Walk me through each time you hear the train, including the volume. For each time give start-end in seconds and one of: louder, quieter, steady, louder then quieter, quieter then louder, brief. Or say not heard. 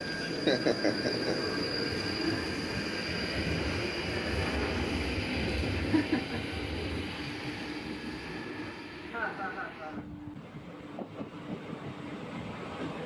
0.0-13.0 quieter.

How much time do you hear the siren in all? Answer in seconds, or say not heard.
not heard.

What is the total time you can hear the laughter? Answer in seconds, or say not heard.
3 s.